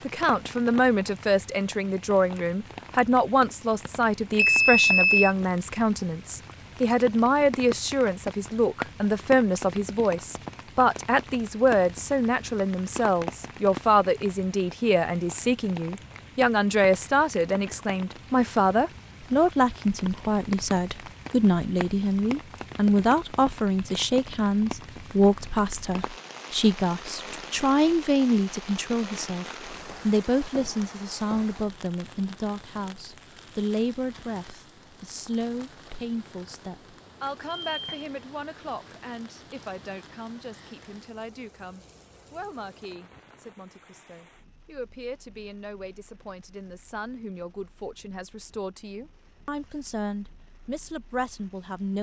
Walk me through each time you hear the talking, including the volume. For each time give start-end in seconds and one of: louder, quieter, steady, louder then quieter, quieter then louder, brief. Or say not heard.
0.0-51.9 quieter.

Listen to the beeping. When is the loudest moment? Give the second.
5 s.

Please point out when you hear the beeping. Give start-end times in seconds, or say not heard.
4.3-5.3, 37.6-38.1.